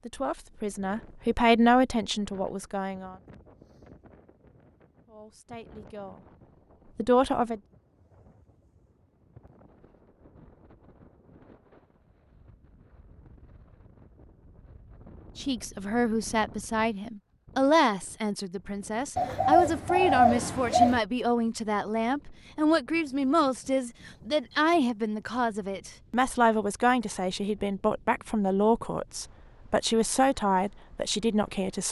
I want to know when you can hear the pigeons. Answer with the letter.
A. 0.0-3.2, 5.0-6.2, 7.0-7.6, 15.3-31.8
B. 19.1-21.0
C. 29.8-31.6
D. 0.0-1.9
B.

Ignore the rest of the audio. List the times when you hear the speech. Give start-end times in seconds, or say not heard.
0.0-3.2, 5.0-6.2, 7.0-7.6, 15.3-31.8.